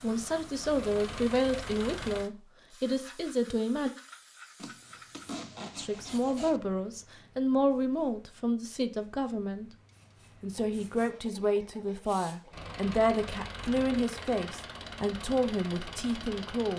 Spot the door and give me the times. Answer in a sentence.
You can't hear the door here.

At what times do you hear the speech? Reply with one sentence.
The speech can be heard from 0.0 to 3.9 s, from 5.8 to 9.7 s and from 10.4 to 16.7 s.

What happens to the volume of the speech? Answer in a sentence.
The loudness of the speech stays about the same.